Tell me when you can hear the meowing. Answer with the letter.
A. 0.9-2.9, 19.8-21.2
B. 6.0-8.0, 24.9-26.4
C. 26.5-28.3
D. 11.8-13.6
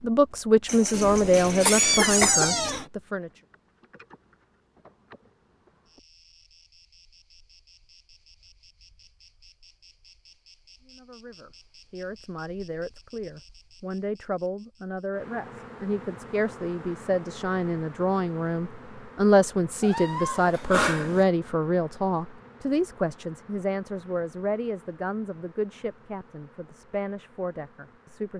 A.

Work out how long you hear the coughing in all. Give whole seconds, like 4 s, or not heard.
2 s.